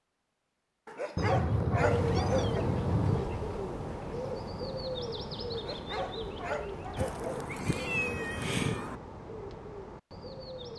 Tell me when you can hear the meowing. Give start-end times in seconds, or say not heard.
1.1-3.2, 7.0-9.0.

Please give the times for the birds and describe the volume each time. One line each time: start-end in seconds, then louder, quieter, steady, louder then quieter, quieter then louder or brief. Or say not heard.
1.8-10.7 quieter.